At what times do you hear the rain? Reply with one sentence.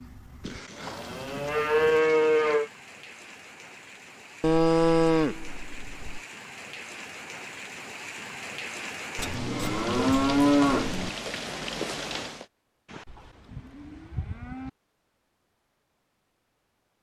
You can hear the rain from 0.0 to 12.4 s.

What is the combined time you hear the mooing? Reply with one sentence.
The mooing can be heard for 8 seconds in total.